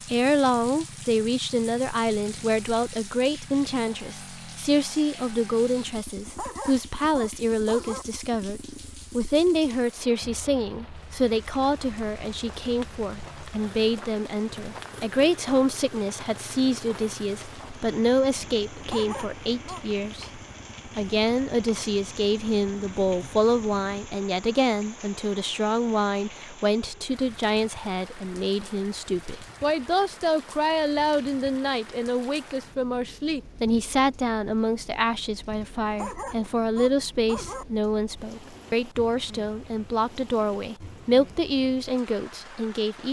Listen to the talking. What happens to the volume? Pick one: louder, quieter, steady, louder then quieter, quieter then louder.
steady.